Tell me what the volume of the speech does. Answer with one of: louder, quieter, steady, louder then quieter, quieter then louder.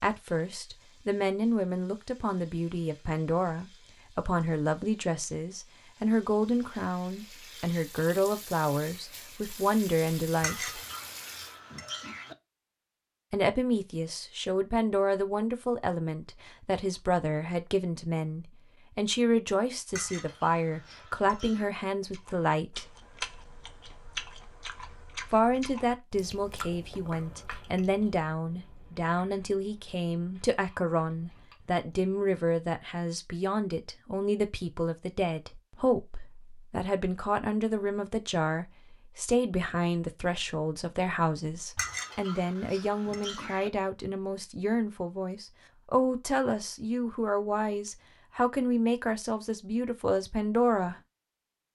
steady.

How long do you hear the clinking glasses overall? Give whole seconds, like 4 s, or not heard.
6 s.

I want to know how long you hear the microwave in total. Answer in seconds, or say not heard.
not heard.